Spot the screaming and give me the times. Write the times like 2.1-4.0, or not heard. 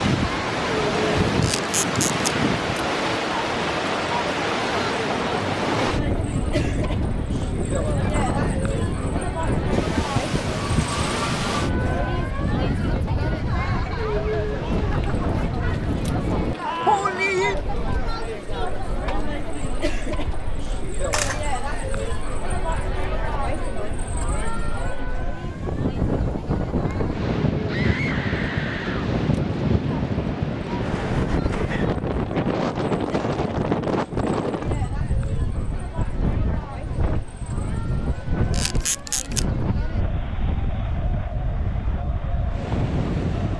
16.6-17.5, 27.6-29.1.